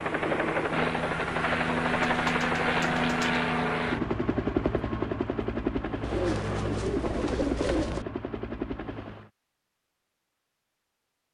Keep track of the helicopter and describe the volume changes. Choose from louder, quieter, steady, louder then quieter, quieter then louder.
quieter.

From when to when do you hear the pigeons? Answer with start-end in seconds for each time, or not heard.
2.0-3.4, 6.0-8.1.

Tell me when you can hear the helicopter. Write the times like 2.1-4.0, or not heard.
0.0-9.3.